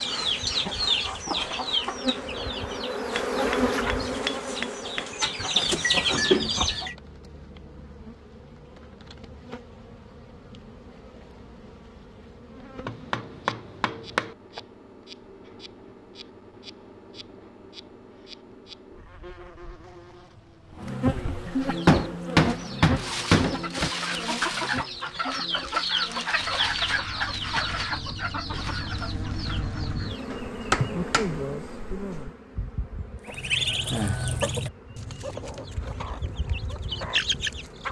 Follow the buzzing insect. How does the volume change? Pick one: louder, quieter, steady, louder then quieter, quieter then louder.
quieter then louder.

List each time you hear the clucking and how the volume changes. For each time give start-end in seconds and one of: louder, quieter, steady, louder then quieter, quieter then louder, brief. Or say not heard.
0.0-7.0 quieter then louder
21.6-30.3 louder then quieter
33.2-37.8 quieter then louder.